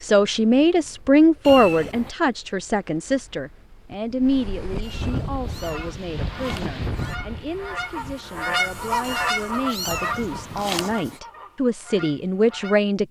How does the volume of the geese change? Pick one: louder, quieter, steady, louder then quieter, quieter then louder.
louder then quieter.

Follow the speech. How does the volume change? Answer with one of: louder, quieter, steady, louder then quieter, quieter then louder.
quieter then louder.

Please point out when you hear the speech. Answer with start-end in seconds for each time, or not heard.
0.0-13.0.